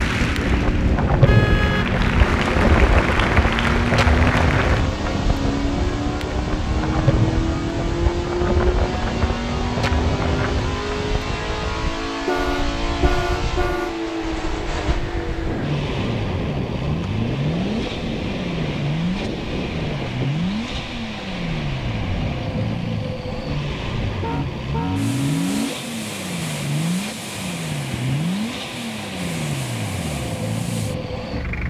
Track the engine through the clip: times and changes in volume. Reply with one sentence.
You can hear the engine from 0.0 to 31.6 s, at a steady volume.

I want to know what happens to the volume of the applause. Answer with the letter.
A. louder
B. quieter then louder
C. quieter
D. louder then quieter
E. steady
A.